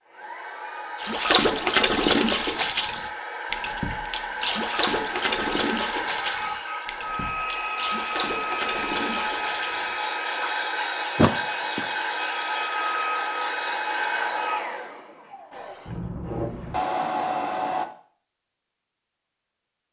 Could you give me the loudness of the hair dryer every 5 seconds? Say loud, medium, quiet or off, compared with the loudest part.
medium, loud, loud, loud.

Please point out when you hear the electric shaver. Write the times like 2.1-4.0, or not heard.
not heard.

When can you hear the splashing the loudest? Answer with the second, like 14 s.
2 s.